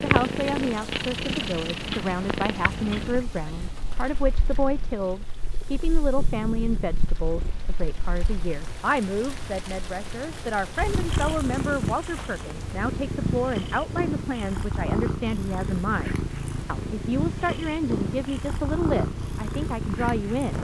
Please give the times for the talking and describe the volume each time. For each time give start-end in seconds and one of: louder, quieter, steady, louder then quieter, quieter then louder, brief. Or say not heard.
0.0-20.5 steady.